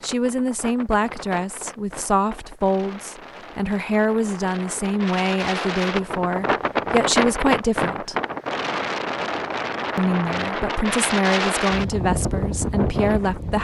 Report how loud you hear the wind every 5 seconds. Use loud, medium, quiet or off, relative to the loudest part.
quiet, loud, loud.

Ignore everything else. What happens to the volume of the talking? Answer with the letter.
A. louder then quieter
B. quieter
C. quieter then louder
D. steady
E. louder
D.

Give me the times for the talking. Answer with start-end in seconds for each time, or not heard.
0.0-8.2, 9.9-13.5.